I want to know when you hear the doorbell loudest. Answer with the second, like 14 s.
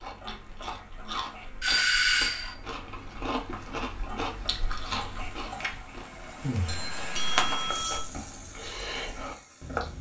2 s.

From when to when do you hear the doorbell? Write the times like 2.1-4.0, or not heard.
1.6-2.5, 6.7-8.1.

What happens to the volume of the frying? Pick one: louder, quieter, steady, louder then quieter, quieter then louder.
louder then quieter.